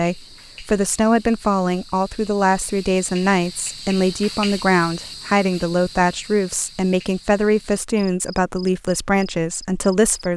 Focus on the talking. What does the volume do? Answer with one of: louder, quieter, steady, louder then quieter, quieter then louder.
steady.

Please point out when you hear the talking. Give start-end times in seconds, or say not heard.
0.0-10.3.